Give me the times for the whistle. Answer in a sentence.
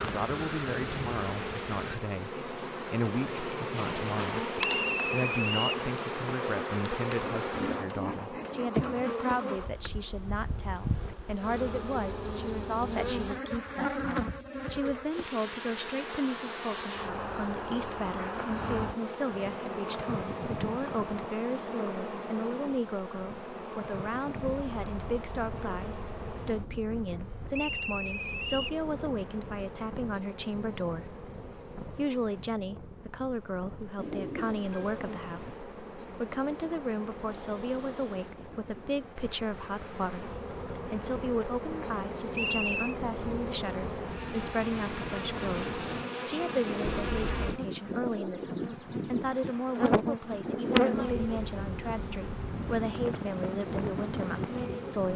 You can hear the whistle from 4.5 to 5.8 s, from 27.5 to 28.8 s and from 42.3 to 43.0 s.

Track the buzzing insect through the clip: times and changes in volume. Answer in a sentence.
You can hear the buzzing insect from 0.0 to 55.1 s, getting quieter then louder.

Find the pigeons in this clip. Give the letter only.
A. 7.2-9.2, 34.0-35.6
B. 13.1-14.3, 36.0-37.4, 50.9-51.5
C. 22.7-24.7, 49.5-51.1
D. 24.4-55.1
A.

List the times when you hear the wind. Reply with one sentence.
The wind can be heard from 24.4 to 55.1 s.